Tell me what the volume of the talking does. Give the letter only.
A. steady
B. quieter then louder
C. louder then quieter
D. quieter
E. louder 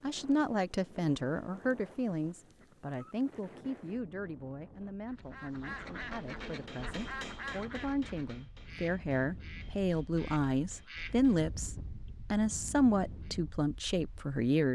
B.